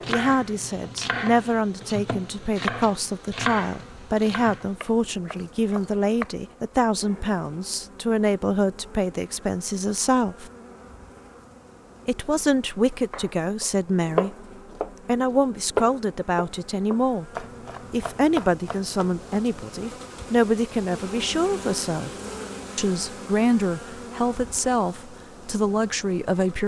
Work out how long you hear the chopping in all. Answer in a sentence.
The chopping can be heard for 13 seconds in total.